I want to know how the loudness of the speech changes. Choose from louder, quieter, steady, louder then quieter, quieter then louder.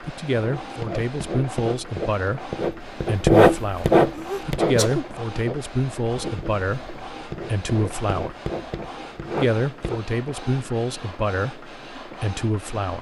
steady.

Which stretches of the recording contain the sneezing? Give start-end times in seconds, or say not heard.
4.1-5.1.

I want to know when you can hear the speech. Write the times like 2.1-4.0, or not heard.
0.0-8.3, 9.3-12.9.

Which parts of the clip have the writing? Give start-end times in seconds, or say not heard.
0.3-10.2.